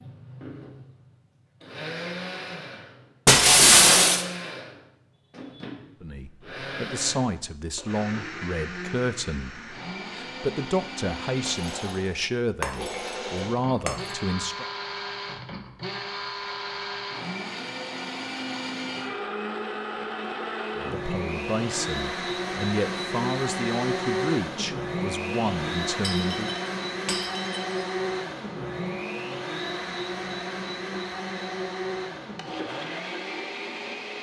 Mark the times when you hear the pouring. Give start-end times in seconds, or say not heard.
not heard.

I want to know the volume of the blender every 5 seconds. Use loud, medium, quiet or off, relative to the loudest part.
medium, medium, medium, loud, loud, loud, loud.